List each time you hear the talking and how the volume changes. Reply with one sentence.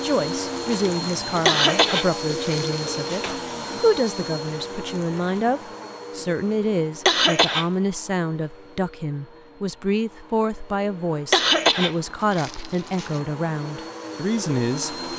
The talking can be heard from 0.0 to 15.1 s, at a steady volume.